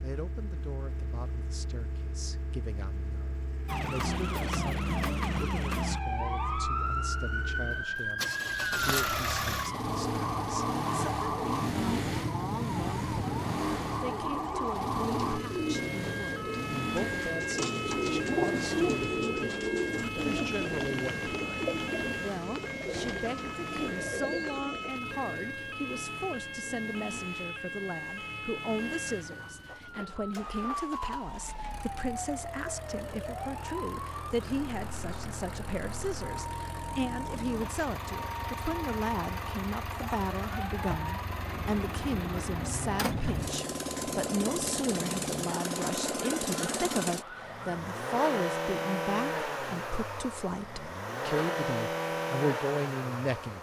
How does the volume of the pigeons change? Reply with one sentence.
The volume of the pigeons goes up, then down.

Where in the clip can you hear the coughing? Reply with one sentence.
You can't hear the coughing here.